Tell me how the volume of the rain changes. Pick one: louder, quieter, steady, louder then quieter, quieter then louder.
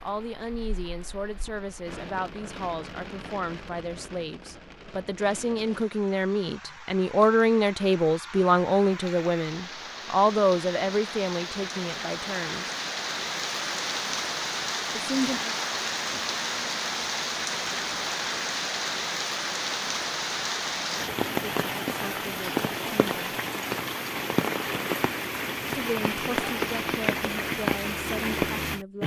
louder.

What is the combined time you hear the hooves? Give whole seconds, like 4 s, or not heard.
not heard.